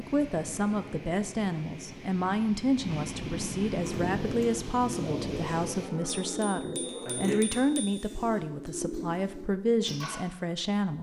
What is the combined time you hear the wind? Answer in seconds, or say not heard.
6 s.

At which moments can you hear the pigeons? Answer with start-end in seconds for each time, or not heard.
3.8-10.2.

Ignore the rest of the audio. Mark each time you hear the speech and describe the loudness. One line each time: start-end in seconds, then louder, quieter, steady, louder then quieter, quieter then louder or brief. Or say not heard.
0.0-10.9 steady.